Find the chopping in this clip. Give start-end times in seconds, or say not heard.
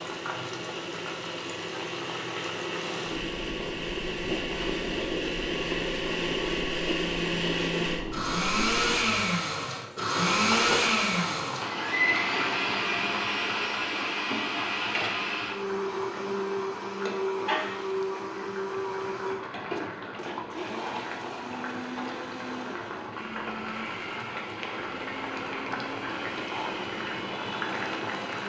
not heard.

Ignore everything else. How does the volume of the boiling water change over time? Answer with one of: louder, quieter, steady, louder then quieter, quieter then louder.
steady.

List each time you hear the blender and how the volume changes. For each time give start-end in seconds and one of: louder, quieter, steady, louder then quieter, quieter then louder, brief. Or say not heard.
0.0-28.4 louder then quieter.